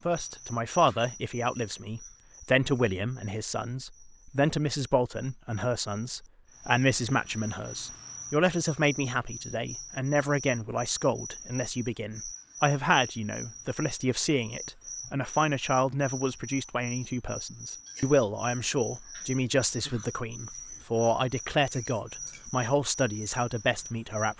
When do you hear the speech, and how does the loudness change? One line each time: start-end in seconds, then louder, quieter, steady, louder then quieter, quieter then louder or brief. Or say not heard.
0.1-24.3 steady.